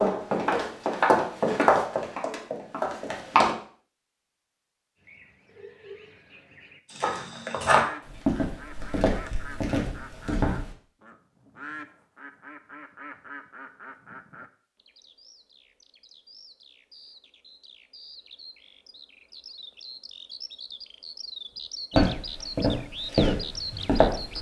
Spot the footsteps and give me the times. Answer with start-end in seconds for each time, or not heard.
0.0-3.5, 6.9-10.7, 21.9-24.3.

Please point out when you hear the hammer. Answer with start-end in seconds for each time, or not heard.
not heard.